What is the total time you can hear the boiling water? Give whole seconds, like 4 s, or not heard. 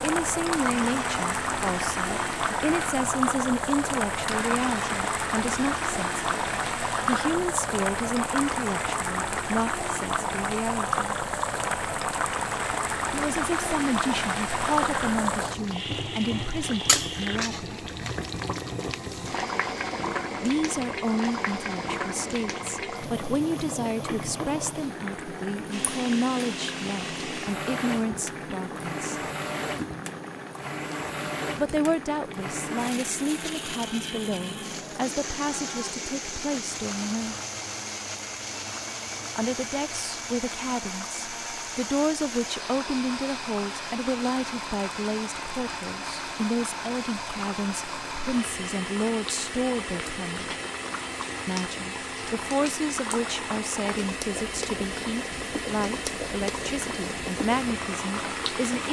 59 s.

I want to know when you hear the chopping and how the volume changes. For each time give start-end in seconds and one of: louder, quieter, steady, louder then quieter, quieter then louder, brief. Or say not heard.
not heard.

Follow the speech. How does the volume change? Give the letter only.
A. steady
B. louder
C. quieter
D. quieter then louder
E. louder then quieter
A.